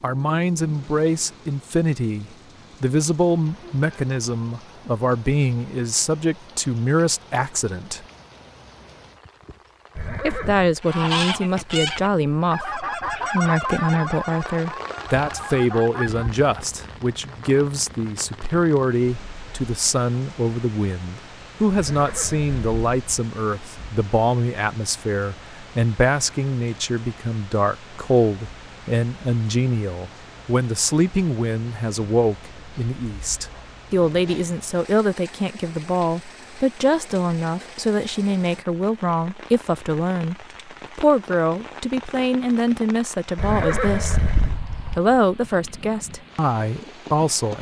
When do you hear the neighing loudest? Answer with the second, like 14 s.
44 s.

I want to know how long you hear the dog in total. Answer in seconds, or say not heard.
not heard.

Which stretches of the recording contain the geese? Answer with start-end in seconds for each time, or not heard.
10.8-16.3.